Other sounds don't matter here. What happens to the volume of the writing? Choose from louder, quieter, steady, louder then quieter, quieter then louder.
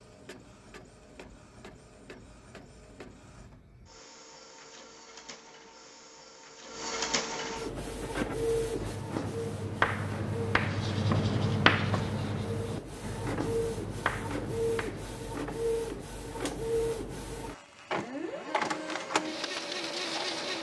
louder then quieter.